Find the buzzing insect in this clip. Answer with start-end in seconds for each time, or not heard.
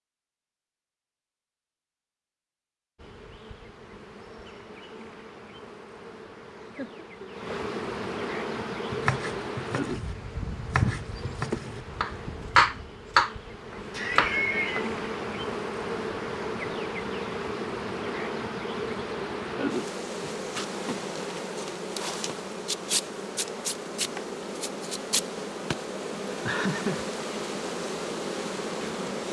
3.0-29.2.